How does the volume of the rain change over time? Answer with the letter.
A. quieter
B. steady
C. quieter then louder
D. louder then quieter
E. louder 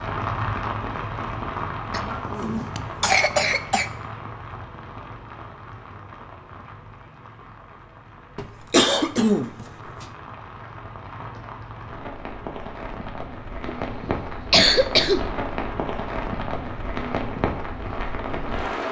C.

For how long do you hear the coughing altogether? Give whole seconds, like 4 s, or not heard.
5 s.